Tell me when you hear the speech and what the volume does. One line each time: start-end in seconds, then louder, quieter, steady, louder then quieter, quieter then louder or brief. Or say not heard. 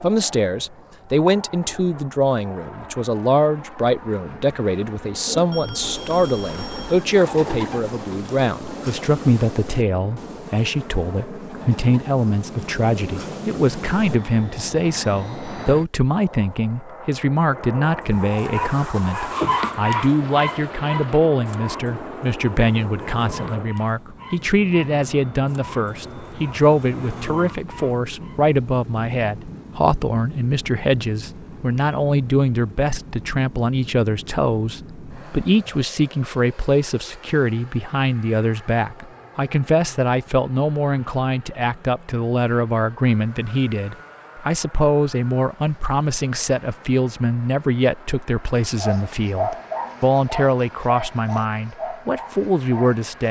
0.0-53.2 steady.